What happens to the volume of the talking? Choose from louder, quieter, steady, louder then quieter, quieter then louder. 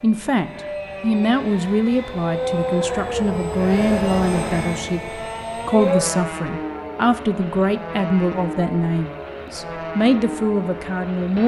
steady.